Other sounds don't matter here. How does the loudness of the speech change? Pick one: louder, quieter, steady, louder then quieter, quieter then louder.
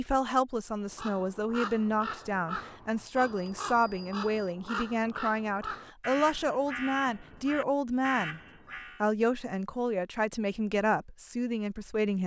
steady.